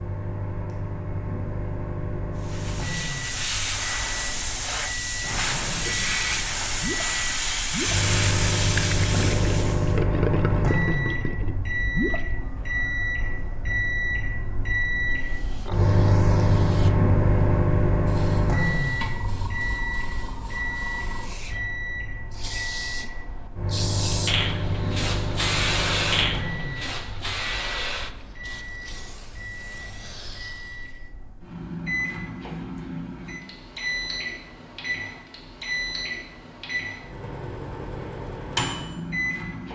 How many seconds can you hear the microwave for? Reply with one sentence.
The microwave can be heard for 40 seconds in total.